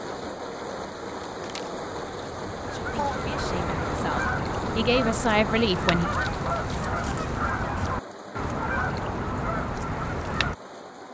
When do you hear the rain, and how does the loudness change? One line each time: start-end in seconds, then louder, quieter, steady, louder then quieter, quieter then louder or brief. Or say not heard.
0.0-11.0 quieter.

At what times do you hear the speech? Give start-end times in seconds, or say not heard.
2.7-6.1.